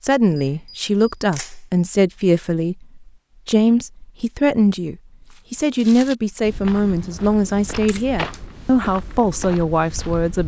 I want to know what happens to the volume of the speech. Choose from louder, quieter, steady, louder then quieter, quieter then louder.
steady.